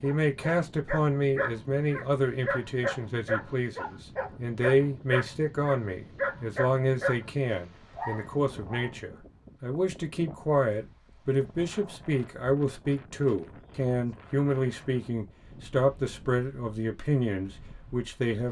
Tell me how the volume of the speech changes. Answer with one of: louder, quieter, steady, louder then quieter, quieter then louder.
steady.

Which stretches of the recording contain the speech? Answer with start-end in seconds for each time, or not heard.
0.0-18.4.